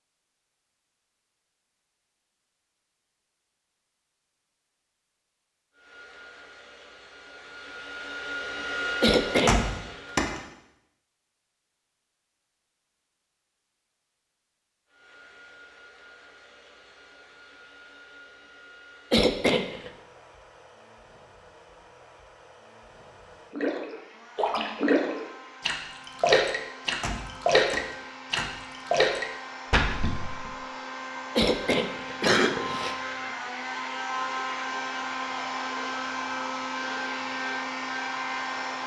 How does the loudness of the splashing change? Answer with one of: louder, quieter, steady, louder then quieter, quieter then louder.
steady.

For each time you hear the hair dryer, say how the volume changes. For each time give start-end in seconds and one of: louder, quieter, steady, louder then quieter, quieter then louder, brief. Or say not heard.
5.7-10.3 louder then quieter
14.8-38.8 louder.